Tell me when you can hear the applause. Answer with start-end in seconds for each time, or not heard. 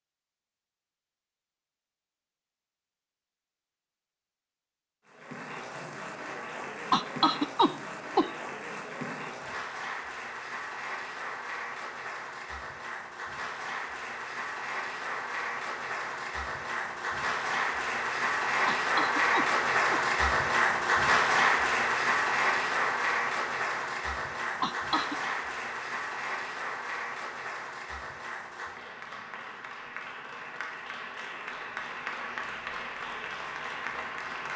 5.0-34.5.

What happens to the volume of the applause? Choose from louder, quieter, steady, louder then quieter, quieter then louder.
louder then quieter.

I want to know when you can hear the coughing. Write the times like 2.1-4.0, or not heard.
6.9-8.3, 18.6-20.0, 24.6-25.1.